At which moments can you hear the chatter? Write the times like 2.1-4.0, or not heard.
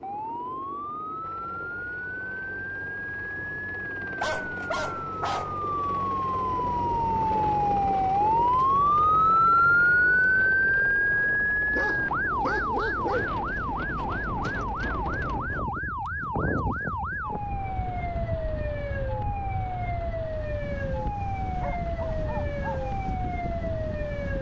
not heard.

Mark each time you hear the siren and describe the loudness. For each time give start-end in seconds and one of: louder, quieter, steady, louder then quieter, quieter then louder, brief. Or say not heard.
0.0-24.3 louder then quieter.